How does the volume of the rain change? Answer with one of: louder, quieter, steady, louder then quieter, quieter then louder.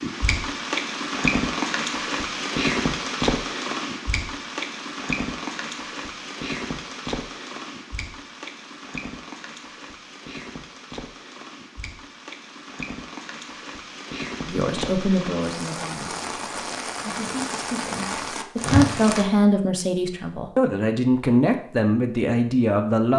quieter then louder.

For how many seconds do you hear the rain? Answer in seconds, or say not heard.
19 s.